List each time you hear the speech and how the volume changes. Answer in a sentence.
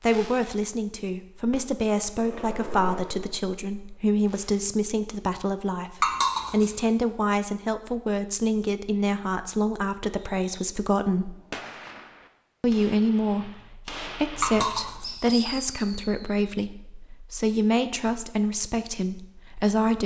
You can hear the speech from 0.0 to 11.3 s, at a steady volume; and from 12.6 to 20.0 s, at a steady volume.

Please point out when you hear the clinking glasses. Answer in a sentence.
The clinking glasses can be heard from 6.0 to 6.8 s and from 14.4 to 15.1 s.